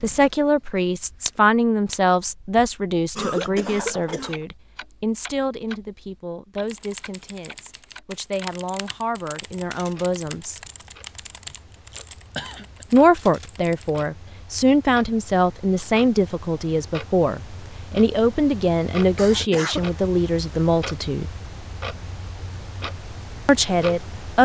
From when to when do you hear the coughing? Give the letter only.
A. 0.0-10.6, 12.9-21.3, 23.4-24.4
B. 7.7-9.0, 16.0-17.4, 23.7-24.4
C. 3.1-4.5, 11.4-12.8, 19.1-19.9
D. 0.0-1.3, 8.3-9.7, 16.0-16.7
C.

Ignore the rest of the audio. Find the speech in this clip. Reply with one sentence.
The speech can be heard from 0.0 to 10.6 s, from 12.9 to 21.3 s and from 23.4 to 24.4 s.